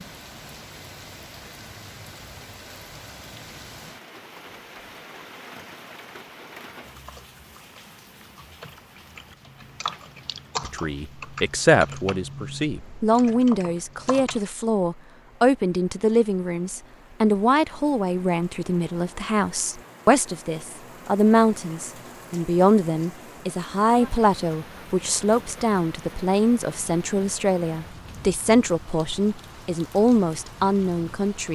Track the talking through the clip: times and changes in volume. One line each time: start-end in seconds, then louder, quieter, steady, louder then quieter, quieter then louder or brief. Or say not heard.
10.6-31.5 steady.